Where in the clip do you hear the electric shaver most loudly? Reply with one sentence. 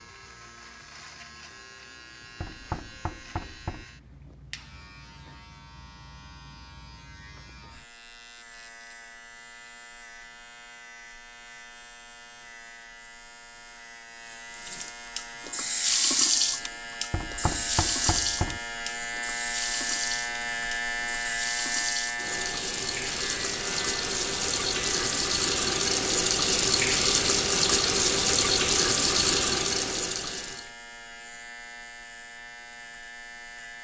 The loudest moment of the electric shaver is at 21 seconds.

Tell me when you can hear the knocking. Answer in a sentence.
The knocking can be heard from 2.4 to 3.9 s and from 17.1 to 18.6 s.